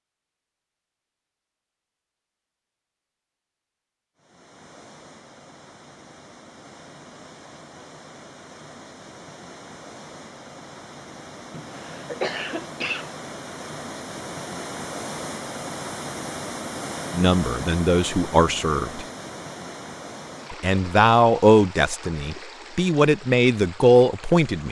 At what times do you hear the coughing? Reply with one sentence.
You can hear the coughing from 11.5 to 13.1 s.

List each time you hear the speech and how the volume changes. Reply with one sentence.
The speech can be heard briefly from 17.1 to 19.0 s; and from 20.5 to 24.6 s, getting quieter then louder.